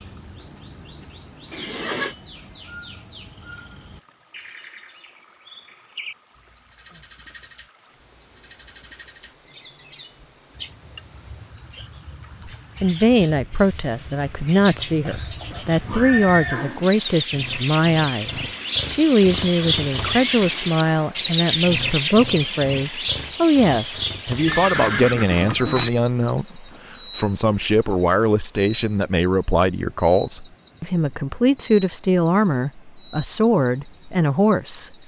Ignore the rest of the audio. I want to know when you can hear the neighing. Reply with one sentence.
You can hear the neighing from 1.5 to 2.1 s, from 15.5 to 16.9 s and from 24.4 to 25.9 s.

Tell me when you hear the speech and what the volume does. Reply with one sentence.
You can hear the speech from 12.4 to 34.9 s, at a steady volume.